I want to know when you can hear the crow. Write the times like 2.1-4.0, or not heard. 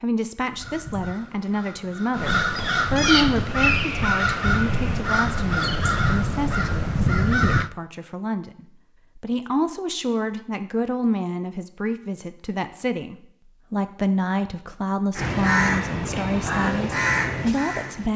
0.5-7.7, 15.2-18.1.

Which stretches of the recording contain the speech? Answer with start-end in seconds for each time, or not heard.
0.0-18.1.